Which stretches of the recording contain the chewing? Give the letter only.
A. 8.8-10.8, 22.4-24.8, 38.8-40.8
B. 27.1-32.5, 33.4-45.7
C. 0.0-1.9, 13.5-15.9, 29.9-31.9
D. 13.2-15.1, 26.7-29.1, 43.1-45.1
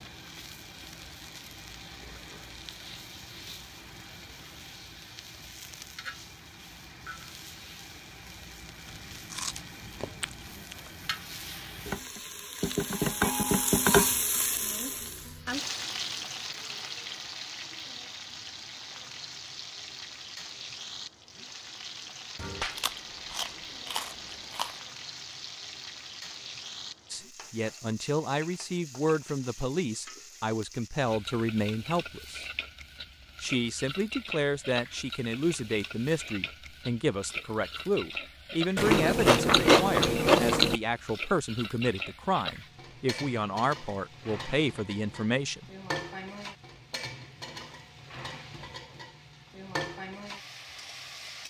A.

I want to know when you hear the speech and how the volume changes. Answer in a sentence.
You can hear the speech from 27.1 to 32.5 s, at a steady volume; and from 33.4 to 45.7 s, at a steady volume.